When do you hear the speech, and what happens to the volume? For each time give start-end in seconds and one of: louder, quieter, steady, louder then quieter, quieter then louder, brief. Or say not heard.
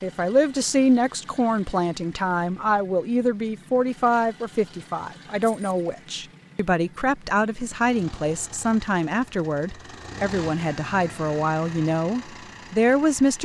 0.0-13.3 steady.